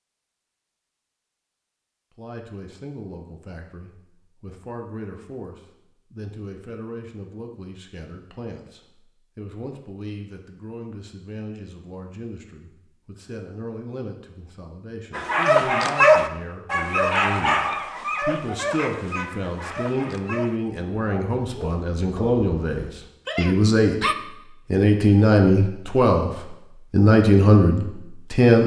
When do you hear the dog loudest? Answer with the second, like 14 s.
16 s.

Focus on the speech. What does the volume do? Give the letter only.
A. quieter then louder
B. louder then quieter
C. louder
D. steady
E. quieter
C.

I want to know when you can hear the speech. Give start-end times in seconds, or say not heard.
2.1-28.6.